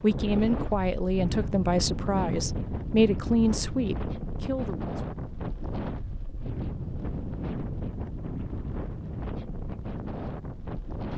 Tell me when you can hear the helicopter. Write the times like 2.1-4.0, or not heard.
not heard.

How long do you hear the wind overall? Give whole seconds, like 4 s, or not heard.
11 s.